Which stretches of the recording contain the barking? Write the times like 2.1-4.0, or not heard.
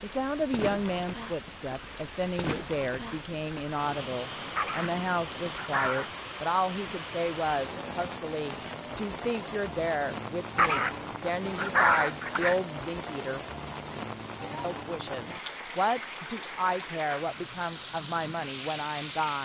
4.5-6.1, 10.6-12.6.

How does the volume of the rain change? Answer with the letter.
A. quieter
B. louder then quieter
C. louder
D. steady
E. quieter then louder
D.